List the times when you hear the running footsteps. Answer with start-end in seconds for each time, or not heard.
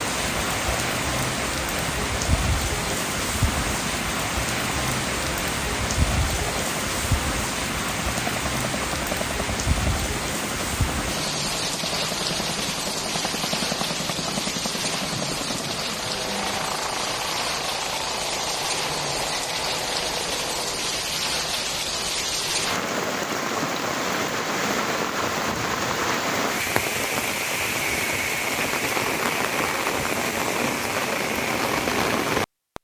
not heard.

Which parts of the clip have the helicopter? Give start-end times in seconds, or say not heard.
0.2-20.9.